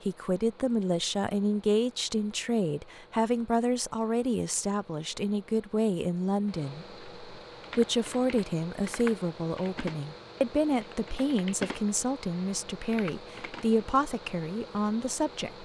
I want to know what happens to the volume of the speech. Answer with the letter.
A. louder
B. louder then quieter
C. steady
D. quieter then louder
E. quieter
C.